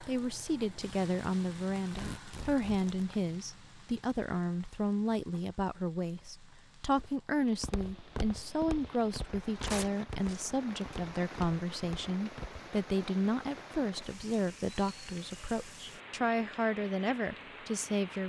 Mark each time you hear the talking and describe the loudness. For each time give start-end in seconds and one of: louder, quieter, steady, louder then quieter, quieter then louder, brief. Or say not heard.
0.1-18.2 steady.